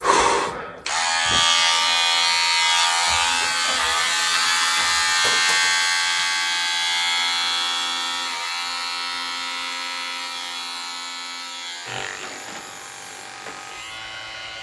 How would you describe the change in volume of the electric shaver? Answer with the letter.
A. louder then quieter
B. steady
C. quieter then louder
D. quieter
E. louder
D.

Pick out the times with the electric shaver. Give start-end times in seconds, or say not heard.
0.0-14.5.